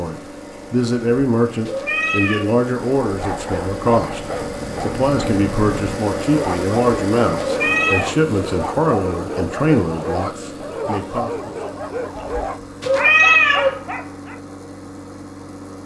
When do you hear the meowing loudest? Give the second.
13 s.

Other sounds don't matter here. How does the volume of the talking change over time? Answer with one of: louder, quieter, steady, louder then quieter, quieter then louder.
steady.